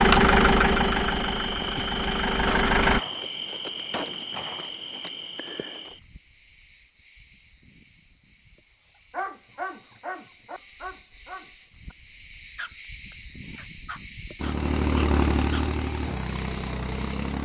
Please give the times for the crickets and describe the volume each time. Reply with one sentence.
You can hear the crickets from 0.0 to 17.4 s, getting quieter then louder.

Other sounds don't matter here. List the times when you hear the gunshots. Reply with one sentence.
The gunshots can be heard from 2.5 to 4.8 s.